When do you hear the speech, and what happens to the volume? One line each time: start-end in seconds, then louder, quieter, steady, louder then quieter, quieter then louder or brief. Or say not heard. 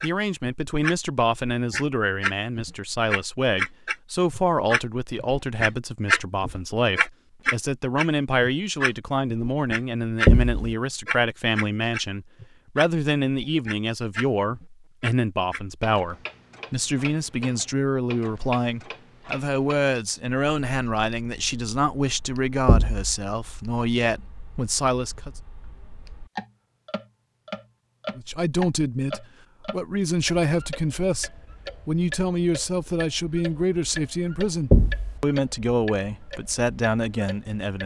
0.0-25.3 steady
28.1-37.8 steady.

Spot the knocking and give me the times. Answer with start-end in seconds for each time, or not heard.
10.2-10.8, 22.6-23.1, 34.7-35.2.